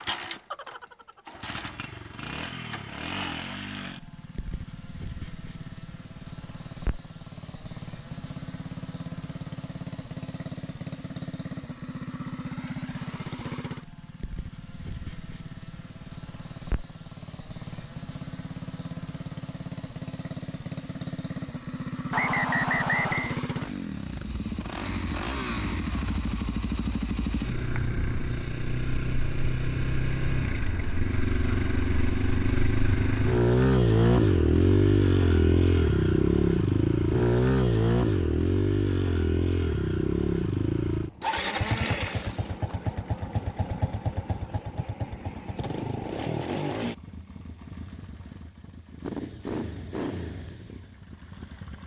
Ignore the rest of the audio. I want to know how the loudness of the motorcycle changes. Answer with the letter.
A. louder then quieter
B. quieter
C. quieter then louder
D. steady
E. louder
A.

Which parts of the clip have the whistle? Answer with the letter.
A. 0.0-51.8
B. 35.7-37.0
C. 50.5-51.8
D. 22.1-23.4
D.